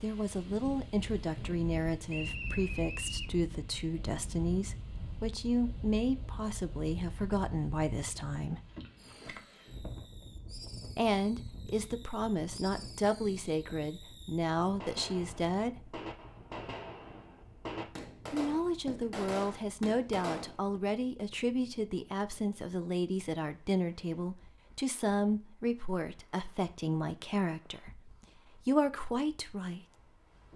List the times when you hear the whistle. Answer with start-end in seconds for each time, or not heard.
2.0-3.4.